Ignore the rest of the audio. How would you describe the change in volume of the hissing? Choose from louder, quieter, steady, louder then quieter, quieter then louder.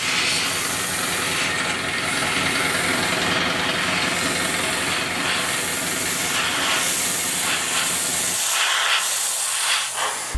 louder.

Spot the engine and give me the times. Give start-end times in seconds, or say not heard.
0.0-8.3.